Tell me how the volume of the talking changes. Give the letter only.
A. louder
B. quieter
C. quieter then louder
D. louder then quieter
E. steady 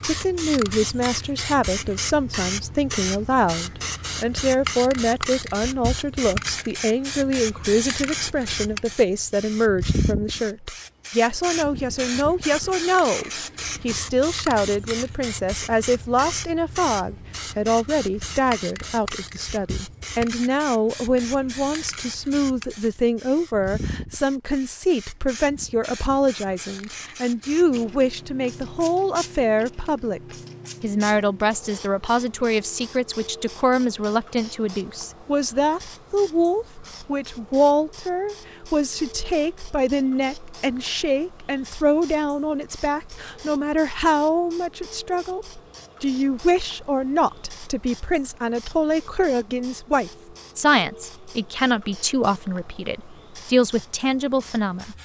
E.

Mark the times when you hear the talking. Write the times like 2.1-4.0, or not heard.
0.0-55.0.